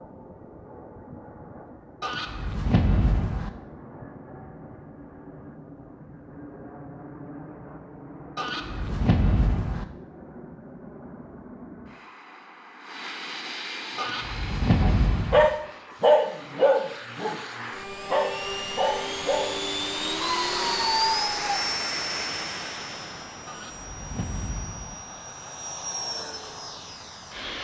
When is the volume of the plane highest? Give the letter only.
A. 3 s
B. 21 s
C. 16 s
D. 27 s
B.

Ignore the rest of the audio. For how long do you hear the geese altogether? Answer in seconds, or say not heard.
6 s.